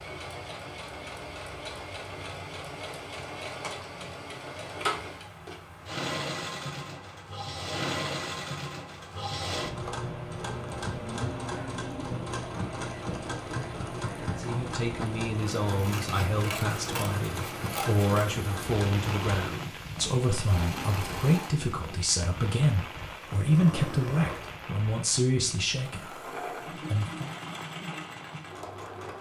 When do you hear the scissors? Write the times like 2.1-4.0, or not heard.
15.8-18.2.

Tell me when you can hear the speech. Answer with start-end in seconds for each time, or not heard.
14.3-27.4.